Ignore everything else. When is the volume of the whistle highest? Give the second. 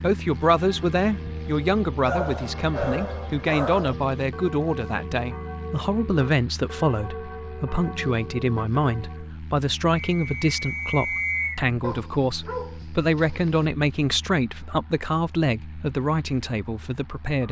11 s.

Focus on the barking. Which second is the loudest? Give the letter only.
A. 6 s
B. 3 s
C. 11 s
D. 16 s
B.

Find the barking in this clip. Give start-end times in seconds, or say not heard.
2.0-4.0, 11.8-13.7.